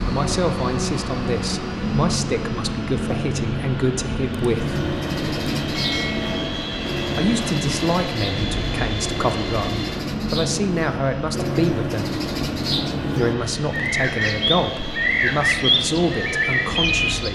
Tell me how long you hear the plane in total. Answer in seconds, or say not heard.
17 s.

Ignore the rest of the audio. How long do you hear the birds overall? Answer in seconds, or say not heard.
13 s.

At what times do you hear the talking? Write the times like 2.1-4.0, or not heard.
0.1-4.8, 7.2-12.0, 13.2-17.3.